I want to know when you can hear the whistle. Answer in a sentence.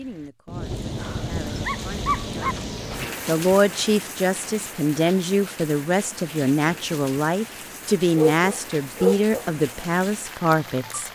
You can't hear the whistle here.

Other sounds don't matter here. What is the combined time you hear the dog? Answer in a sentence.
The dog can be heard for 3 seconds in total.